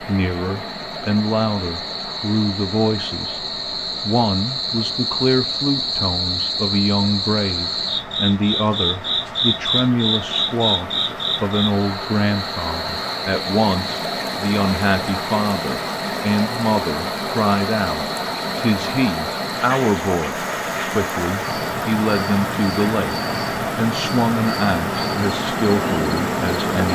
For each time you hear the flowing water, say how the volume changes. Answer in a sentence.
You can hear the flowing water from 0.0 to 26.9 s, getting louder.